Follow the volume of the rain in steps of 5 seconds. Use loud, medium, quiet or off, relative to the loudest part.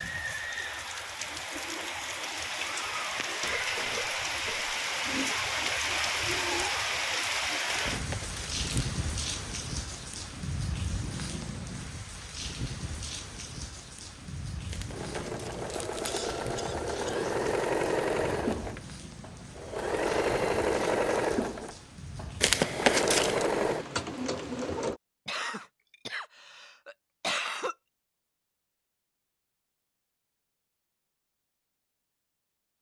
loud, loud, medium, quiet, quiet, off, off.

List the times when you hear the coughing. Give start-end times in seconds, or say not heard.
3.4-4.8, 16.1-17.2, 25.2-27.8.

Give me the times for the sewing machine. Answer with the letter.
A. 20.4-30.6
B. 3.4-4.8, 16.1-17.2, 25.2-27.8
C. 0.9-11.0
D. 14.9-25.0
D.